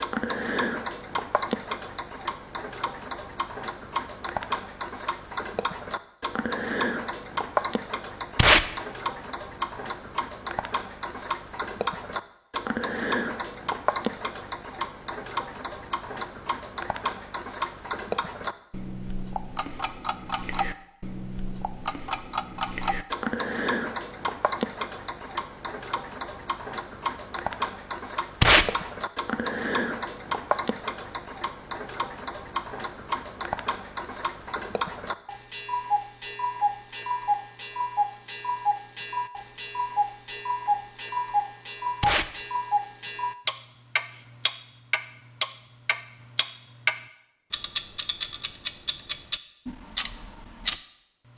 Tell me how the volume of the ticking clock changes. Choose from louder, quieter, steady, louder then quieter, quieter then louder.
steady.